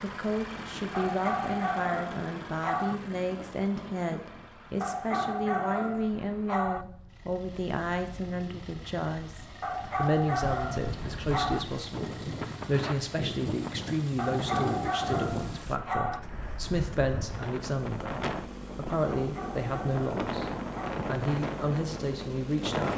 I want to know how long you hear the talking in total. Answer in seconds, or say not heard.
23 s.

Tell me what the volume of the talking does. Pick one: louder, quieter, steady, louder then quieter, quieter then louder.
steady.